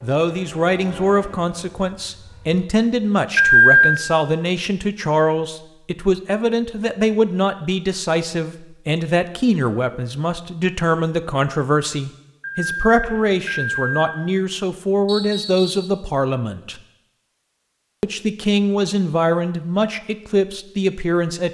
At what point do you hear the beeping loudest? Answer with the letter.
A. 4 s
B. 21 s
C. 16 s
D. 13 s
A.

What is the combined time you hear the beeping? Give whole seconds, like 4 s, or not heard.
2 s.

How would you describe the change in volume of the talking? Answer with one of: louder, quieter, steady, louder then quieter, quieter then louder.
steady.